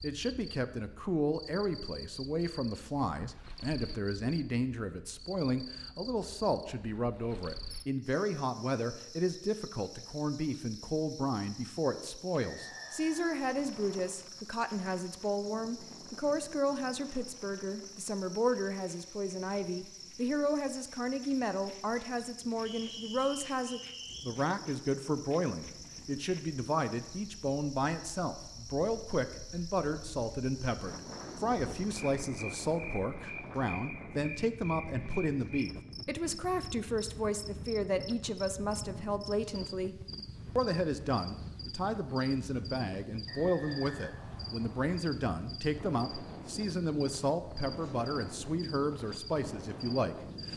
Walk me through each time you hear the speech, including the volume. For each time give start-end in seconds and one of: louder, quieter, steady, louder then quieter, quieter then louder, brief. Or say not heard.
0.0-40.0 steady
40.5-50.5 steady.